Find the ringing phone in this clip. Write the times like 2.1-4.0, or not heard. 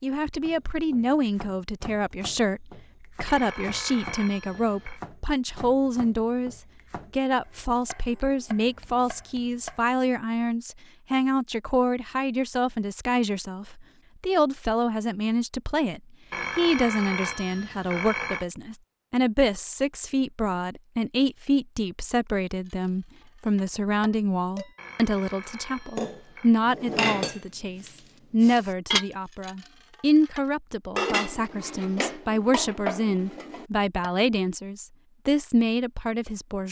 3.2-5.0, 16.3-18.4, 24.8-26.6.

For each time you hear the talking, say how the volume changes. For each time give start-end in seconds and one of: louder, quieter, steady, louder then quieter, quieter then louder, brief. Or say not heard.
0.0-36.6 steady.